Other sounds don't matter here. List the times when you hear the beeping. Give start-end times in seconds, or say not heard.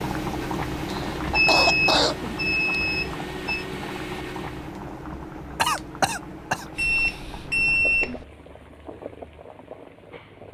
1.1-3.6, 6.8-8.2.